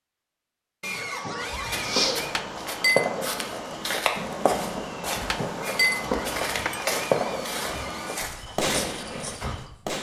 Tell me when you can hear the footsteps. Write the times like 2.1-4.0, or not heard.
1.5-9.7.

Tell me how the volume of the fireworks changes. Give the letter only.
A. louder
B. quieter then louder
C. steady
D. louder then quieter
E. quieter
C.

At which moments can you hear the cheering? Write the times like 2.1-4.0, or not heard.
0.8-2.4, 5.6-8.2.